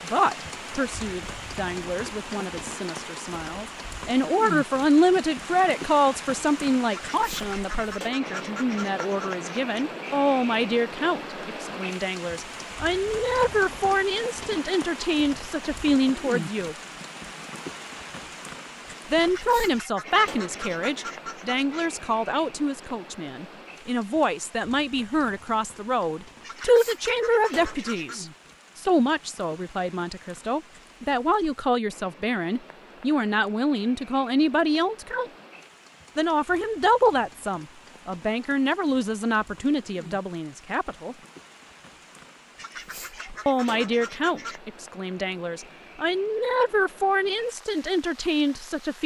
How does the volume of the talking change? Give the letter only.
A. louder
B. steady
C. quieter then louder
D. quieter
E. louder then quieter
B.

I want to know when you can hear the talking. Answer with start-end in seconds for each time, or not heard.
0.0-16.8, 19.1-35.3, 36.1-41.1, 43.5-49.0.